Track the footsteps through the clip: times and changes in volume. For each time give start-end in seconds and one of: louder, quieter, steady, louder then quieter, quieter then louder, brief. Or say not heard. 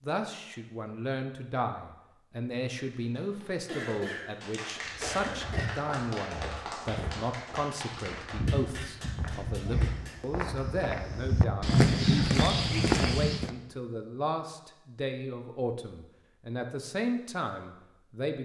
4.8-13.5 louder.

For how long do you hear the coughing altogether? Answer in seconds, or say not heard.
2 s.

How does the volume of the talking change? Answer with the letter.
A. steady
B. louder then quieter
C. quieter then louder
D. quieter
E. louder
A.